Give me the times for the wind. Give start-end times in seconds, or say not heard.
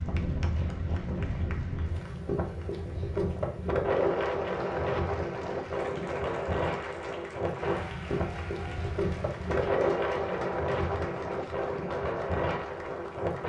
0.0-13.4.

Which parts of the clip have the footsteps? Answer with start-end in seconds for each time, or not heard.
not heard.